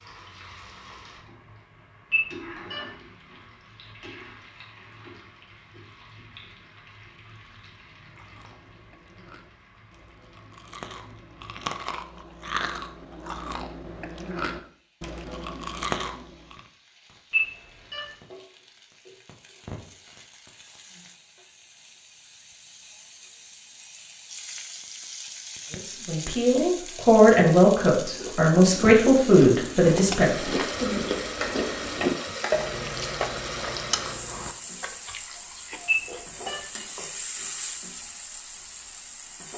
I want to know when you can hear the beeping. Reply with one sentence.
The beeping can be heard from 2.1 to 2.9 s, from 17.3 to 18.1 s and from 35.9 to 36.6 s.